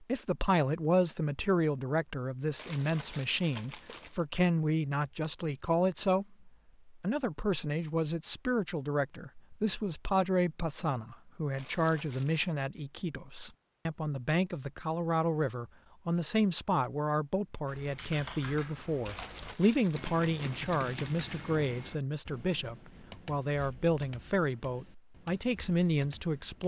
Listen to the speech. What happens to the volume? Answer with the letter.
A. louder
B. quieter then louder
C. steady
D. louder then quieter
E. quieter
C.